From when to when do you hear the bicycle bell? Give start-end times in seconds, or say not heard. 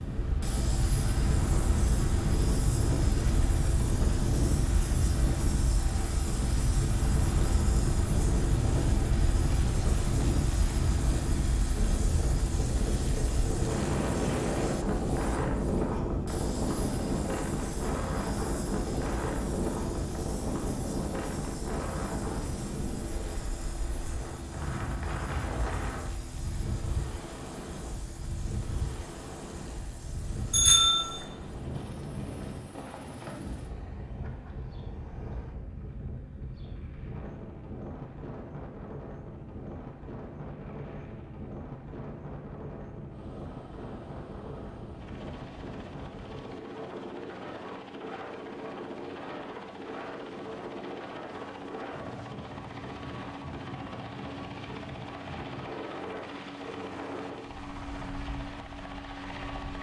30.5-31.1.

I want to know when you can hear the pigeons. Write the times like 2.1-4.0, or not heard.
not heard.